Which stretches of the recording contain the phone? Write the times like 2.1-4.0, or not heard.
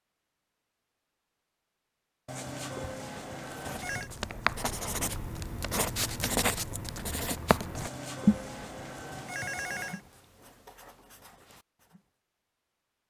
2.2-4.1, 7.8-10.0.